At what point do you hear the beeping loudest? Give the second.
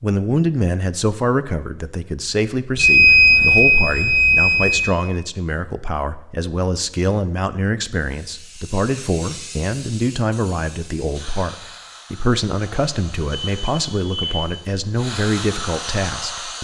3 s.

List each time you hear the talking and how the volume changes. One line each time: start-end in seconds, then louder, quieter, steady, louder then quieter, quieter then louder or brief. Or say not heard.
0.0-16.5 steady.